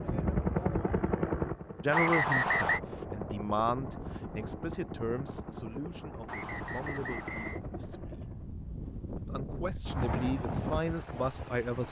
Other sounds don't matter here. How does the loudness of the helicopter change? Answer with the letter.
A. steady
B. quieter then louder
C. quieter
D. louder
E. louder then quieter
C.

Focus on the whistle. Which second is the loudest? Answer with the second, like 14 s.
2 s.